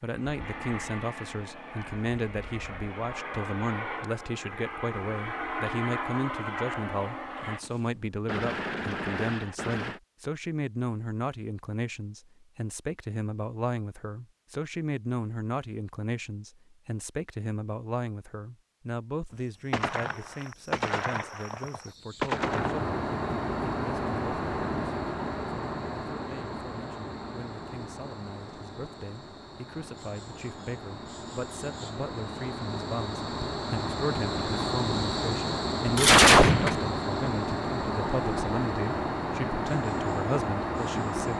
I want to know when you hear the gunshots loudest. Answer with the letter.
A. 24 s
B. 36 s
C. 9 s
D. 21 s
B.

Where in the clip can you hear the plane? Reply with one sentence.
The plane can be heard from 0.0 to 7.6 s and from 22.4 to 41.3 s.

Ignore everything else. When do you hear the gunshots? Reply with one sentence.
The gunshots can be heard from 7.4 to 10.0 s, from 19.7 to 22.8 s and from 35.9 to 36.9 s.